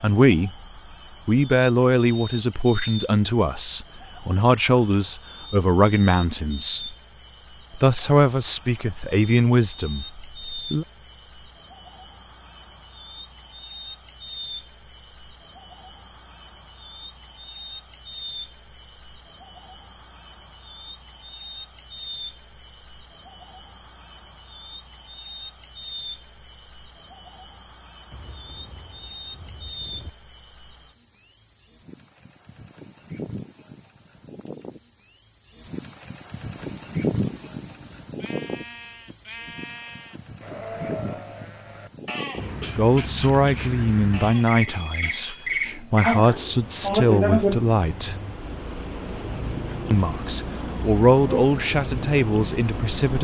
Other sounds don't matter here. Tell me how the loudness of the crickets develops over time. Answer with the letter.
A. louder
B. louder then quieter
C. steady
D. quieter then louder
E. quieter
A.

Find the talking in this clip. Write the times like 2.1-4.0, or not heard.
0.0-0.6, 1.2-6.8, 7.8-10.8, 42.8-48.1, 49.9-53.1.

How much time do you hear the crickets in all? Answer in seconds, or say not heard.
53 s.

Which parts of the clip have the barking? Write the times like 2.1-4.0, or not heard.
not heard.